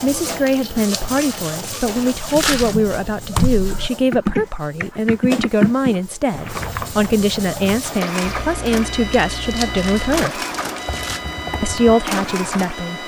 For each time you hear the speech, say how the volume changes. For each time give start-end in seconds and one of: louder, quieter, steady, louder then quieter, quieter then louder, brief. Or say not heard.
0.0-10.4 steady
11.6-13.0 brief.